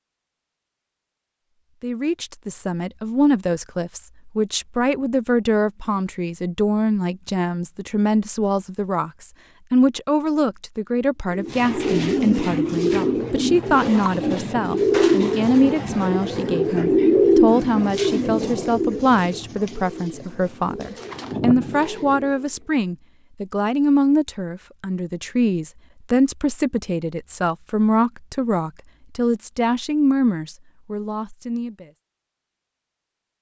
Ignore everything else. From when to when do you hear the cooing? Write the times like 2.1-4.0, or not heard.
11.3-22.6.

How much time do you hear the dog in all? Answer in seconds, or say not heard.
not heard.